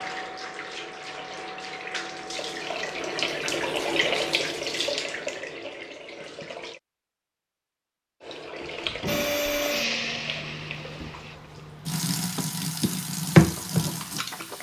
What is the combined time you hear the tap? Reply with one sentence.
The tap can be heard for 13 seconds in total.